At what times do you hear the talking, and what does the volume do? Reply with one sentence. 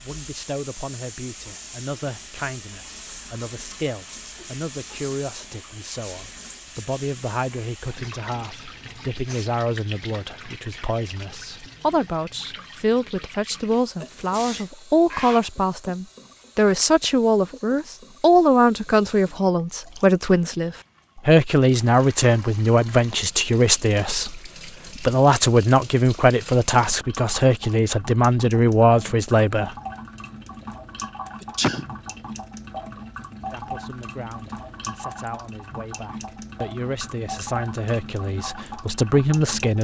You can hear the talking from 0.0 to 29.7 s, getting louder; and from 33.5 to 39.7 s, getting louder.